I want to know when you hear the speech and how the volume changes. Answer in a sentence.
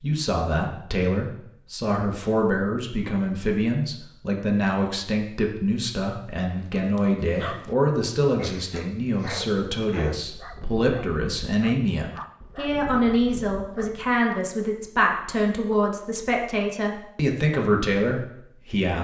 The speech can be heard from 0.0 to 18.9 s, at a steady volume.